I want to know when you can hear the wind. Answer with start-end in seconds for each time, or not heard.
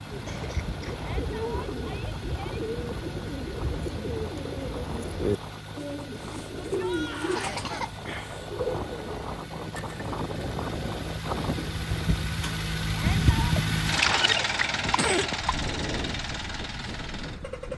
0.0-17.7.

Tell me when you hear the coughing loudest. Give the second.
14 s.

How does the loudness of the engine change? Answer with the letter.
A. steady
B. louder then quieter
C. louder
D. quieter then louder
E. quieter
C.